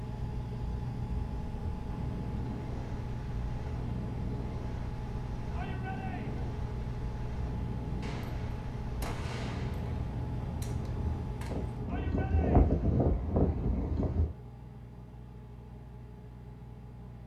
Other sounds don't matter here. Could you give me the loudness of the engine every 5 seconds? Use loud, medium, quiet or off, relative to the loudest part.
loud, loud, loud, medium.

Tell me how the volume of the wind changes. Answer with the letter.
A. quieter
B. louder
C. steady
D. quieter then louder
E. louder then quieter
B.